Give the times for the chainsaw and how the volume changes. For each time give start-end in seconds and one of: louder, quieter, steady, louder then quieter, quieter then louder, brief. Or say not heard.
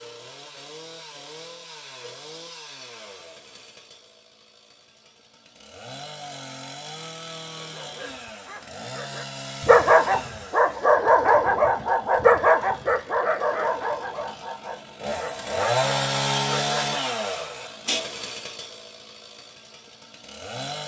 0.0-20.8 louder.